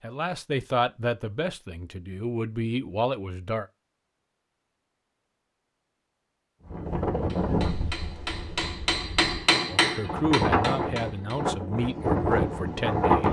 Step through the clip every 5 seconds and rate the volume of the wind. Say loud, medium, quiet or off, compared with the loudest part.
off, medium, loud.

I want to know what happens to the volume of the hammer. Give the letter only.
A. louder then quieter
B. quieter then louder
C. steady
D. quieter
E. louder
A.